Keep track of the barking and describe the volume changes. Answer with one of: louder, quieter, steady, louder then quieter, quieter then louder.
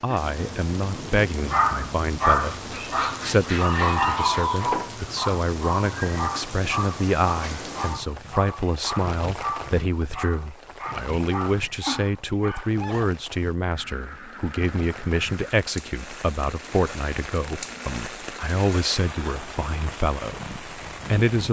quieter.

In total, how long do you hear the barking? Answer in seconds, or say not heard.
12 s.